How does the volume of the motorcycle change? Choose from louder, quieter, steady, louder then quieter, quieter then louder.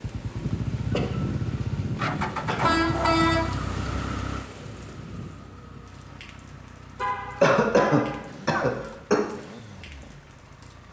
quieter.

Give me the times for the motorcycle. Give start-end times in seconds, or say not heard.
0.0-10.8.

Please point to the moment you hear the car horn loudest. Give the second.
3 s.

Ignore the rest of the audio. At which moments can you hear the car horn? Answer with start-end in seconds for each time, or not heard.
2.6-3.4, 7.0-8.3.